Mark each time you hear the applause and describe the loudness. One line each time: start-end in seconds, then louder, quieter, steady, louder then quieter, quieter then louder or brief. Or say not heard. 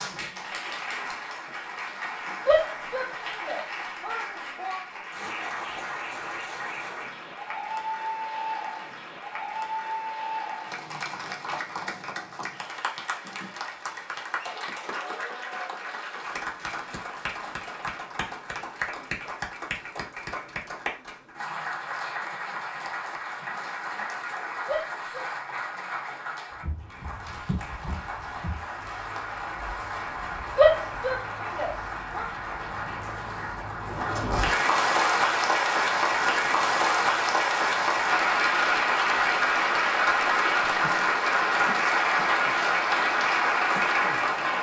0.0-44.5 louder.